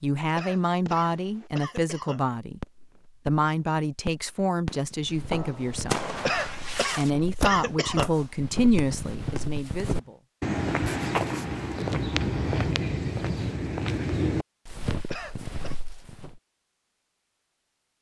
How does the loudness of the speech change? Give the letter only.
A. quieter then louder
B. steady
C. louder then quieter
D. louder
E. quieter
B.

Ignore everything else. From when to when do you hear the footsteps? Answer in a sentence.
You can hear the footsteps from 4.9 to 16.4 s.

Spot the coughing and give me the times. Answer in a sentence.
The coughing can be heard from 0.3 to 2.2 s, from 6.2 to 8.2 s and from 15.1 to 15.8 s.